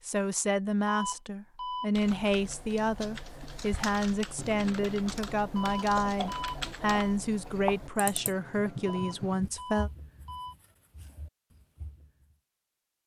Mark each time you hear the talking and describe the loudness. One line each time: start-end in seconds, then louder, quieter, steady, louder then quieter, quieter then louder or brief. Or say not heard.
0.1-9.9 steady.